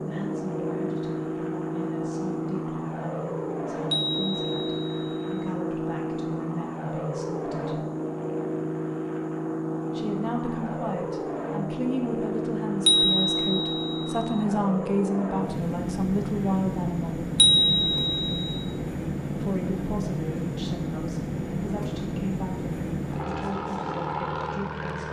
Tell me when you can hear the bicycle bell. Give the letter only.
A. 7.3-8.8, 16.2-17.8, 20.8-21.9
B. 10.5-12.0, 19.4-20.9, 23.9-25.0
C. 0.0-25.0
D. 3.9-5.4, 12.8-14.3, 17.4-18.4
D.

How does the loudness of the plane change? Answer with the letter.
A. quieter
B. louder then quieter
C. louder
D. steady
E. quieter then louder
D.